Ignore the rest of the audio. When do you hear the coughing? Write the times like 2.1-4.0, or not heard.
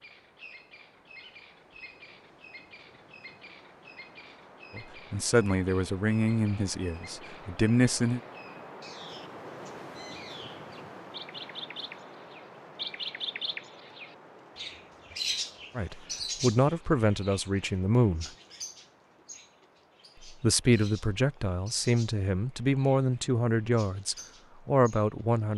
not heard.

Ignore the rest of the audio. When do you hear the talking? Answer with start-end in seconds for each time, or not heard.
4.8-8.2, 15.8-18.3, 20.2-25.5.